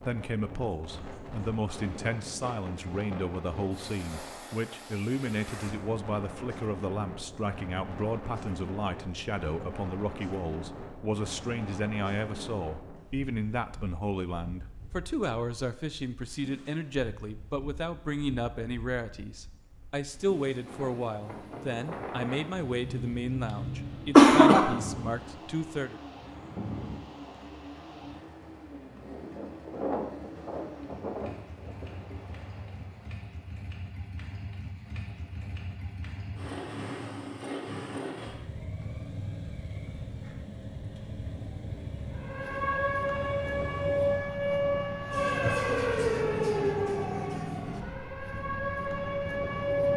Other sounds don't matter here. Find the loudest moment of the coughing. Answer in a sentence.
The volume of the coughing peaks at 24 seconds.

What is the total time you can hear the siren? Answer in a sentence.
You can hear the siren for 8 seconds altogether.